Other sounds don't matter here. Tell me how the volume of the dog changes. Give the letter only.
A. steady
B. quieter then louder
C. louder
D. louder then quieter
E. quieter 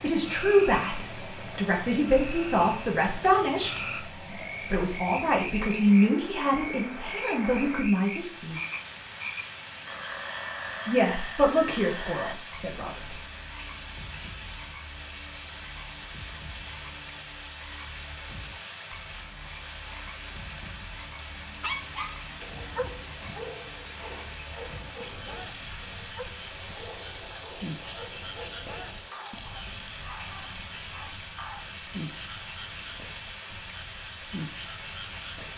E.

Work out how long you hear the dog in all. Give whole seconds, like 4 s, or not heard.
10 s.